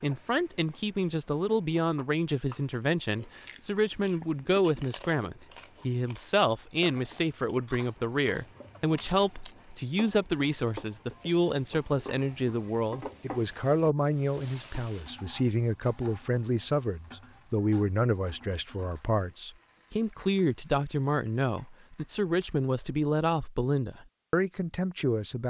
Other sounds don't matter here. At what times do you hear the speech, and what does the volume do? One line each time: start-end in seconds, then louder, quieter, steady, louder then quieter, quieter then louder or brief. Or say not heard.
0.0-25.4 steady.